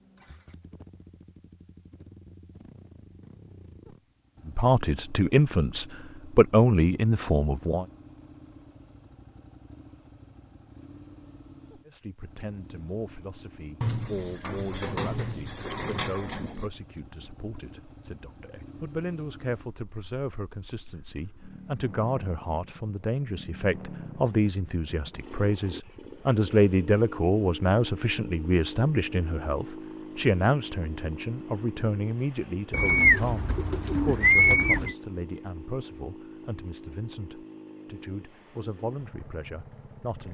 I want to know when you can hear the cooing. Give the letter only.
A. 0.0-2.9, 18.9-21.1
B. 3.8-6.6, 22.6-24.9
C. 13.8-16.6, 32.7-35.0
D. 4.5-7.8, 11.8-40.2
C.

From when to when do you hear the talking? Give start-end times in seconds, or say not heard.
4.5-7.8, 11.8-40.2.